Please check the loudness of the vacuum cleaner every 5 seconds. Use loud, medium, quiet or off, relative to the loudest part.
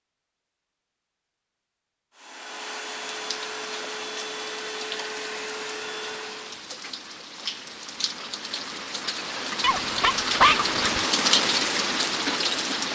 loud, loud, off.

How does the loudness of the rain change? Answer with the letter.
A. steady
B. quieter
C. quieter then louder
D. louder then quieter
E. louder
E.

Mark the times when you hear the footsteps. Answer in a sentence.
The footsteps can't be heard in this clip.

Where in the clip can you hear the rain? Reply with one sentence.
The rain can be heard from 2.9 to 12.8 s.